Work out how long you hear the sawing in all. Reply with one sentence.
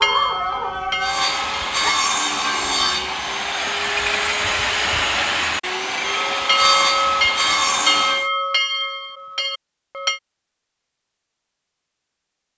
You can hear the sawing for 7 seconds altogether.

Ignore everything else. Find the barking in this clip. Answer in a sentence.
You can hear the barking from 0.0 to 1.9 s.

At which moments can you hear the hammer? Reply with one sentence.
The hammer can't be heard in this clip.